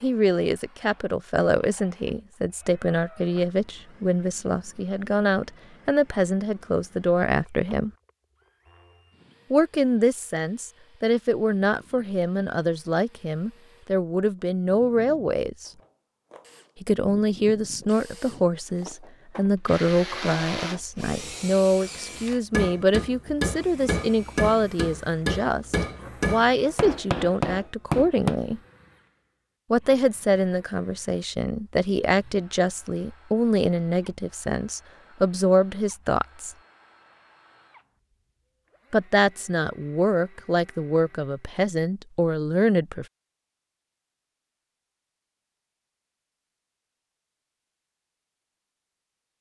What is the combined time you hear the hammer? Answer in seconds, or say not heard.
6 s.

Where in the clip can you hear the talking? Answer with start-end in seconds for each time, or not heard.
0.0-7.9, 9.5-15.7, 16.8-28.6, 29.7-36.5, 38.9-43.0.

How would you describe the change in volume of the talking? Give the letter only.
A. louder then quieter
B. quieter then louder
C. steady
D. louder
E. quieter
C.